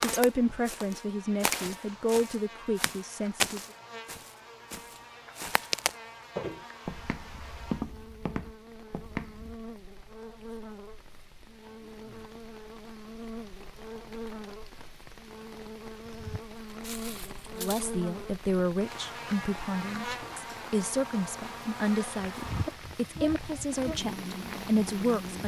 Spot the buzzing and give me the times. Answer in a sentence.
The buzzing can be heard from 0.0 to 25.4 s.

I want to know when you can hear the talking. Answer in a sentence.
You can hear the talking from 0.0 to 3.6 s and from 17.6 to 25.4 s.